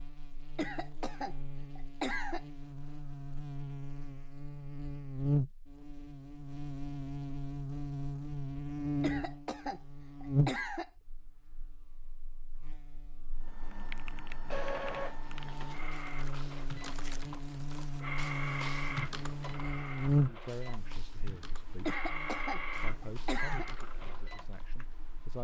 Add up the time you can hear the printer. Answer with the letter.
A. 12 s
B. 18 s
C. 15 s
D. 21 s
A.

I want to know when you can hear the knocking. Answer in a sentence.
The knocking can't be heard in this clip.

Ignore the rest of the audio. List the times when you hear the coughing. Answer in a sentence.
The coughing can be heard from 0.6 to 2.5 s, from 9.0 to 10.9 s and from 21.9 to 23.6 s.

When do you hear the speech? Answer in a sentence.
You can hear the speech from 20.2 to 22.1 s and from 22.8 to 25.3 s.